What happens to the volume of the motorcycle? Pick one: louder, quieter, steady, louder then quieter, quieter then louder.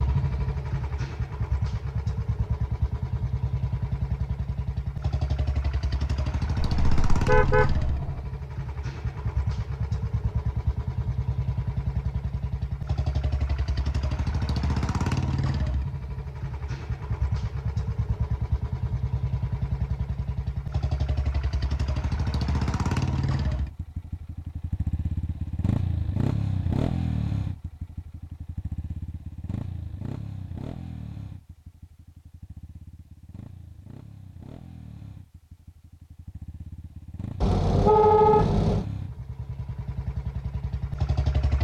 quieter.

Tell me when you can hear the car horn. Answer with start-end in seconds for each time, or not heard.
6.6-8.2, 37.4-38.9.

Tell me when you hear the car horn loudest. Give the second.
38 s.